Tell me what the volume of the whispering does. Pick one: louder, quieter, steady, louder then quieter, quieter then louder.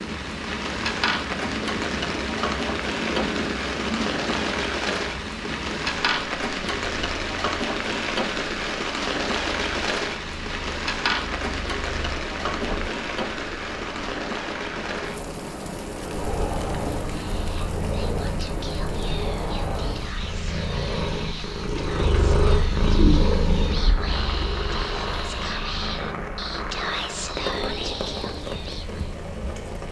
louder.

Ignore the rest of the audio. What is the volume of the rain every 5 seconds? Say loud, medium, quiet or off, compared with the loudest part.
loud, loud, loud, medium, medium, medium.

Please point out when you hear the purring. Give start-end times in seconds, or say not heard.
0.0-29.8.